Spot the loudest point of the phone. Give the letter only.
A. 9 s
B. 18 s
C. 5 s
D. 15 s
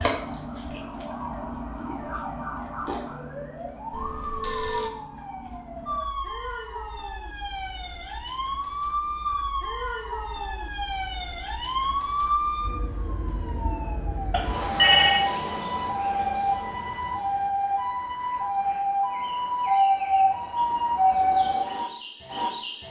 D.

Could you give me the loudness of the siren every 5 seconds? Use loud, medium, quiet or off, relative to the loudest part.
medium, medium, medium, loud, loud.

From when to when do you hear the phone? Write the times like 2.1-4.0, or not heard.
3.9-4.9, 14.3-15.2.